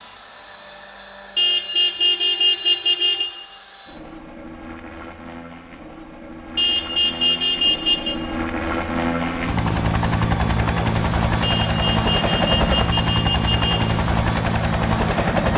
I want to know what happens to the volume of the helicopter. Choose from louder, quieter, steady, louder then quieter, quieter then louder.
louder.